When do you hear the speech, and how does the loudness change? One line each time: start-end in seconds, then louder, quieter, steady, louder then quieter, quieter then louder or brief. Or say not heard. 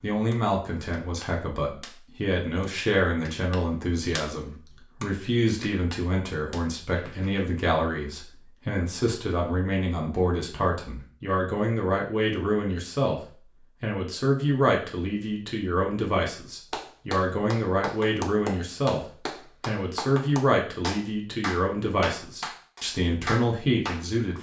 0.0-24.3 steady.